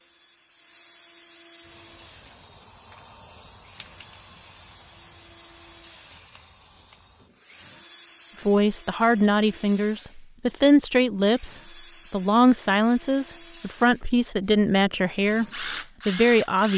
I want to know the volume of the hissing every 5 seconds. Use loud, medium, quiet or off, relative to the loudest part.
loud, loud, off, off.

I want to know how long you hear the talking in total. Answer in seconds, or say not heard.
8 s.